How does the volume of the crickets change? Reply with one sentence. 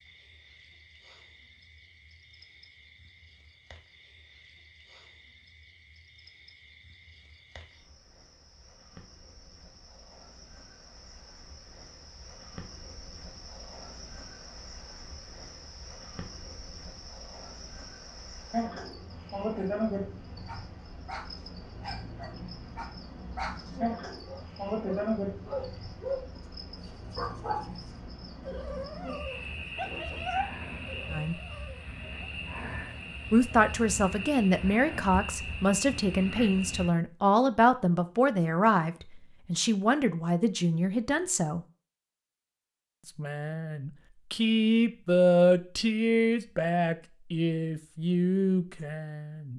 The loudness of the crickets goes up.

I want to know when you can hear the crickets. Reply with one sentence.
The crickets can be heard from 0.0 to 36.9 s.